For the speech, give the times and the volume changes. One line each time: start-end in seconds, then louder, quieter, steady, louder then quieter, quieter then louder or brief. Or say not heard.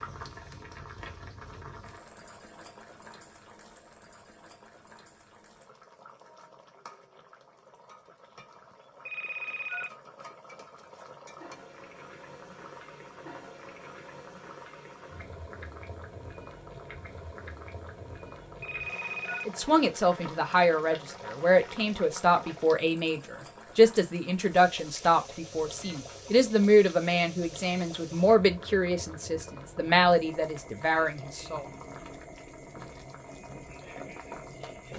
19.4-31.6 steady.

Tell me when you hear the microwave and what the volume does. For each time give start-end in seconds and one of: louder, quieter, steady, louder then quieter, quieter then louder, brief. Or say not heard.
not heard.